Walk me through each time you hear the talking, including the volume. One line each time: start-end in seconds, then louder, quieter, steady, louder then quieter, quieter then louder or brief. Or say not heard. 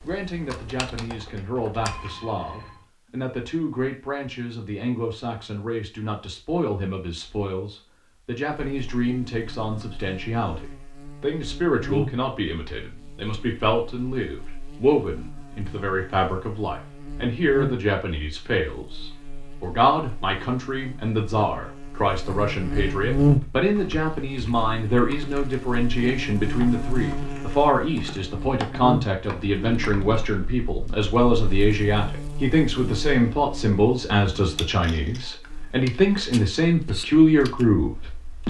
0.0-38.4 louder.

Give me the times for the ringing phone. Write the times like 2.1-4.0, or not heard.
1.8-2.9.